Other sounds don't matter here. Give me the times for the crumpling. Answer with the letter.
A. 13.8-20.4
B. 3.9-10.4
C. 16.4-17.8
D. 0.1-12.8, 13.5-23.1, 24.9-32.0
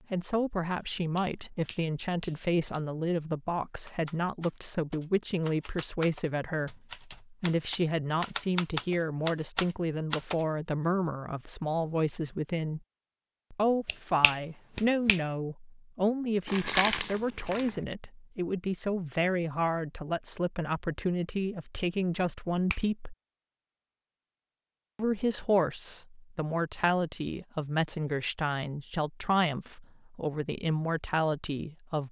C.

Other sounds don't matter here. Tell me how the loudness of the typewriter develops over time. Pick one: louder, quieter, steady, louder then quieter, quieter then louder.
louder.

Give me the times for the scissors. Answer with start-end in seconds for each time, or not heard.
not heard.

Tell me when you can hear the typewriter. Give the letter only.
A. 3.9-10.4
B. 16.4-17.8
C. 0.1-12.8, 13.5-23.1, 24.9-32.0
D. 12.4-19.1
A.